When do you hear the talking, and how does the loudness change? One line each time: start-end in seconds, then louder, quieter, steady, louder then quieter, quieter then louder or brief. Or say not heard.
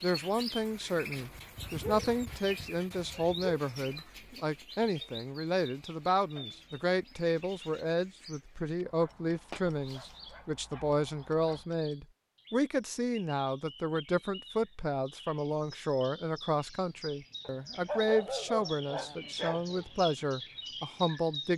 0.0-21.5 steady.